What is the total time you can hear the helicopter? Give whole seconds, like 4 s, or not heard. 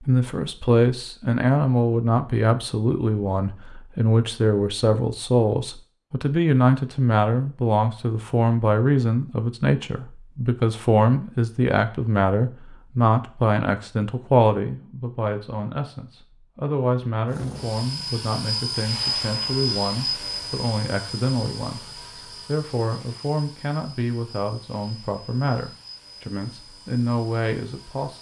11 s.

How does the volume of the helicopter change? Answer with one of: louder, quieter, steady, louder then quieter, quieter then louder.
quieter.